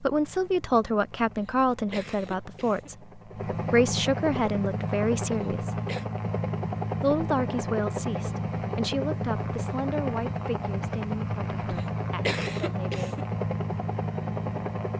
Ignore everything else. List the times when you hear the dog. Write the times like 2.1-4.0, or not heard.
not heard.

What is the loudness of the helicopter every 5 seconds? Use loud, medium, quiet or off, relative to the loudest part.
medium, loud, loud.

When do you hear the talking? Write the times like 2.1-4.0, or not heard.
0.0-5.8, 7.0-13.1.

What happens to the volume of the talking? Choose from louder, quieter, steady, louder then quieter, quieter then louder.
quieter.